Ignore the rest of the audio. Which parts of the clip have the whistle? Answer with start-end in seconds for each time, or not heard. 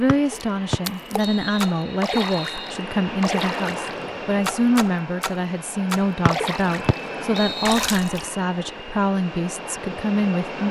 0.1-2.8, 6.2-7.9.